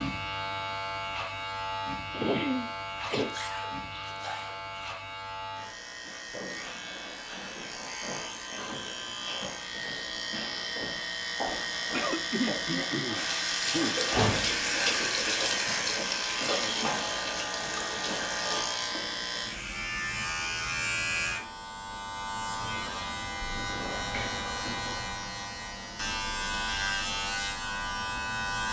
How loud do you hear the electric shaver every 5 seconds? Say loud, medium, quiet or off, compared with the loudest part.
loud, medium, loud, loud, loud, loud.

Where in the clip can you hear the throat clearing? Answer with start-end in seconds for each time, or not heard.
2.1-3.4, 11.9-14.0, 22.5-23.1.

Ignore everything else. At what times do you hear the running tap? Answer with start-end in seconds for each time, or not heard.
13.1-18.6.